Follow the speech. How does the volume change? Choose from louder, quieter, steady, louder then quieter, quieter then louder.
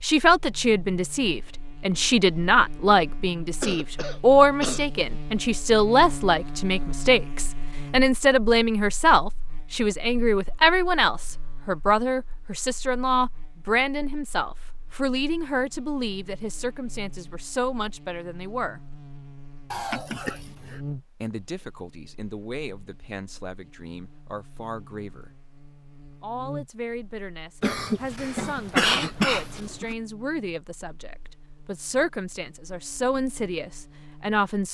quieter then louder.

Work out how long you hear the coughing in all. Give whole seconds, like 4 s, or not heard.
5 s.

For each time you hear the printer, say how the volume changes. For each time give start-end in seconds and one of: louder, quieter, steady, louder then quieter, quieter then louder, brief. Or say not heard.
not heard.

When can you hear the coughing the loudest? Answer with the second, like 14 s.
29 s.